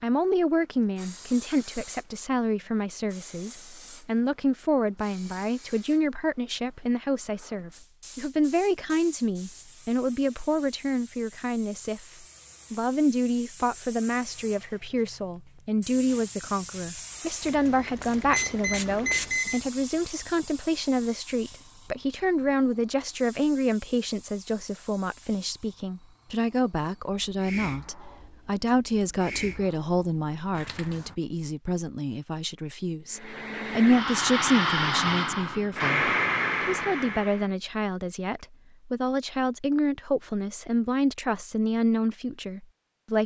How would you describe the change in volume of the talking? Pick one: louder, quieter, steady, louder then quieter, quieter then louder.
steady.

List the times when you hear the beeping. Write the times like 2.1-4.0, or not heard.
18.3-19.6.